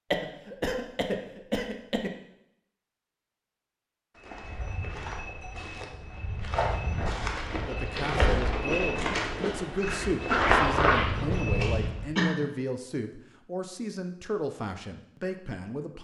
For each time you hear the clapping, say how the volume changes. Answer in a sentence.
You can't hear the clapping here.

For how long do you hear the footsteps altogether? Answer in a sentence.
You can hear the footsteps for 8 seconds altogether.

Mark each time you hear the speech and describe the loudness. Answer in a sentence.
The speech can be heard from 7.5 to 15.9 s, at a steady volume.